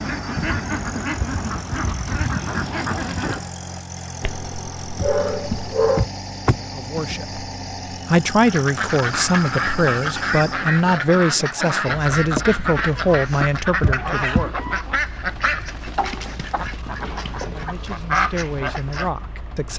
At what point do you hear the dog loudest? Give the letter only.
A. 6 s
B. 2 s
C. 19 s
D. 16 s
A.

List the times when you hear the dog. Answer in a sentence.
You can hear the dog from 4.2 to 6.0 s.